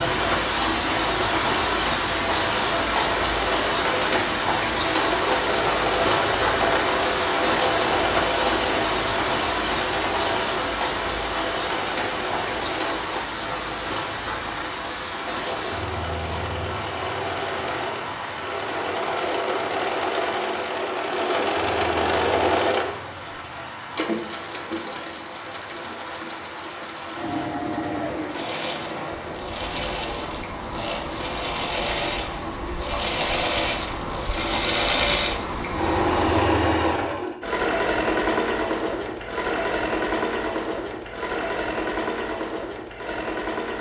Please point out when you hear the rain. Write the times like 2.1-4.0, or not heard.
0.0-36.5.